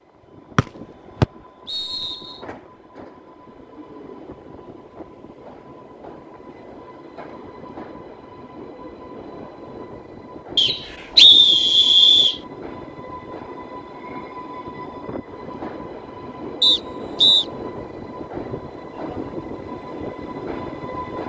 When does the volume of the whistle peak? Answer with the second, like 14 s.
11 s.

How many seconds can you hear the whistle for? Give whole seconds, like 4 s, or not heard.
4 s.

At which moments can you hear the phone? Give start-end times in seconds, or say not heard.
not heard.